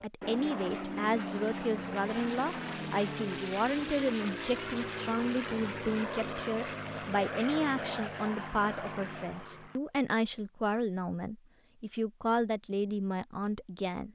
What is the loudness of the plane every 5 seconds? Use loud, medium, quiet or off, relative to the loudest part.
loud, loud, off.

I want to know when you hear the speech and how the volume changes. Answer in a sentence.
You can hear the speech from 0.0 to 14.0 s, at a steady volume.